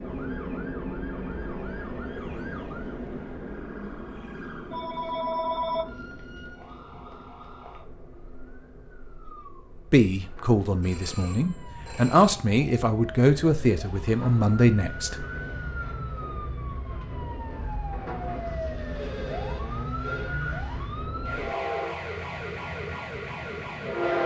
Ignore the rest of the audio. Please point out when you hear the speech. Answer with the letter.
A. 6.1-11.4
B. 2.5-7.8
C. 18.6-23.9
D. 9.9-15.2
D.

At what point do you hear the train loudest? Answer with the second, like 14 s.
24 s.